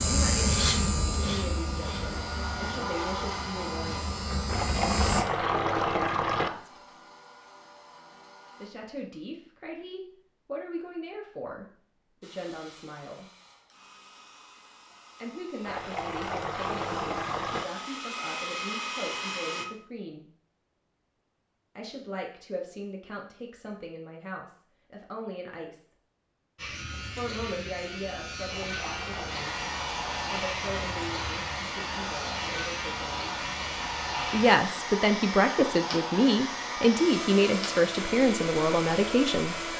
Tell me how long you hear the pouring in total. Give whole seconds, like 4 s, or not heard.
5 s.